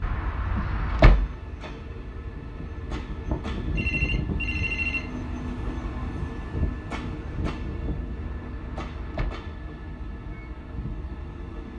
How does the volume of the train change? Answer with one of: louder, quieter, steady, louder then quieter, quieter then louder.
louder then quieter.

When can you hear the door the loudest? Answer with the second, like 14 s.
1 s.